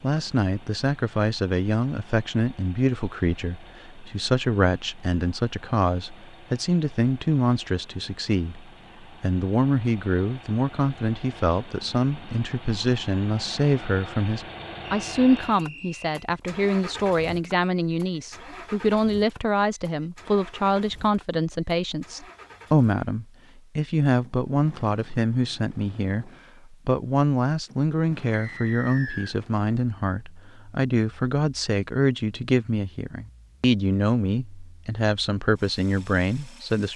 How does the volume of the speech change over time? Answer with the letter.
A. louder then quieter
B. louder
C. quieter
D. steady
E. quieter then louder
D.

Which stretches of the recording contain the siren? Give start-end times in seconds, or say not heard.
not heard.